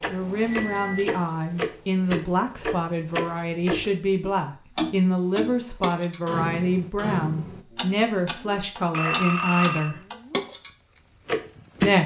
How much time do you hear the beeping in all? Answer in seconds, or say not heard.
3 s.